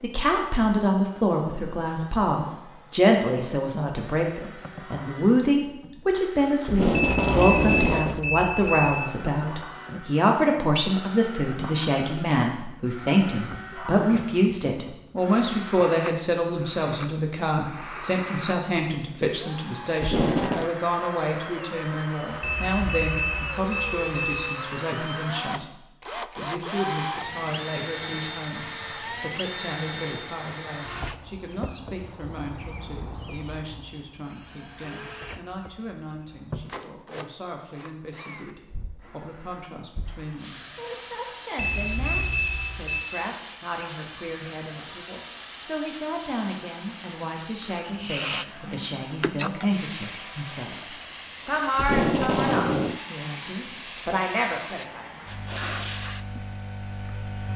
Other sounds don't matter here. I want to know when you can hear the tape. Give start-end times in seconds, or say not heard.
6.7-8.2, 20.0-20.7, 51.8-53.0.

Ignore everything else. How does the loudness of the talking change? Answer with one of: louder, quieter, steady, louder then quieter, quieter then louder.
quieter then louder.